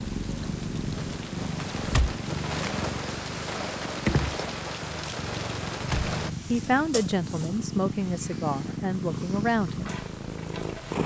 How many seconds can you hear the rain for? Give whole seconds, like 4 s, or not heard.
6 s.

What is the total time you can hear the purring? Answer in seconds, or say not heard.
11 s.